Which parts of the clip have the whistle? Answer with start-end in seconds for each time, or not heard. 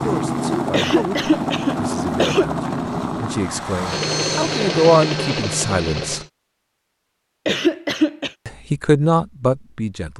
not heard.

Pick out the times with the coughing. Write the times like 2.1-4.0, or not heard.
0.7-2.5, 7.5-8.3.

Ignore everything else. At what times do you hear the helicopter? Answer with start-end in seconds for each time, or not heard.
0.0-6.3.